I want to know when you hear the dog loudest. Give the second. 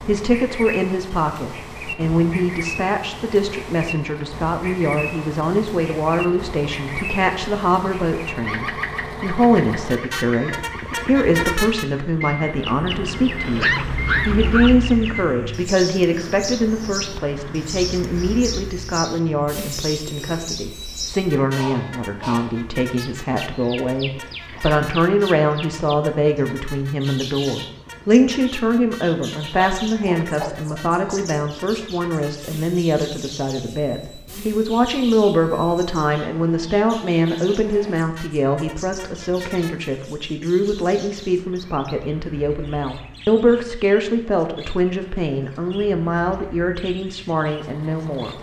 14 s.